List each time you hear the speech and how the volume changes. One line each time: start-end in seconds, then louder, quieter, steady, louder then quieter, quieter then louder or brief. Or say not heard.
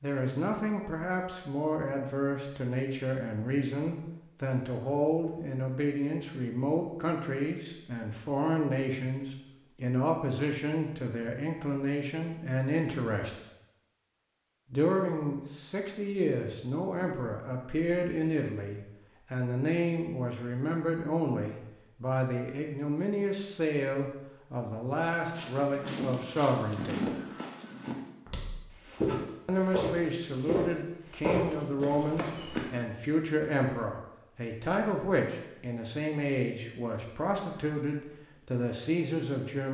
0.0-13.4 steady
14.7-27.1 steady
29.4-39.6 steady.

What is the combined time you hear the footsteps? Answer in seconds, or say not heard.
7 s.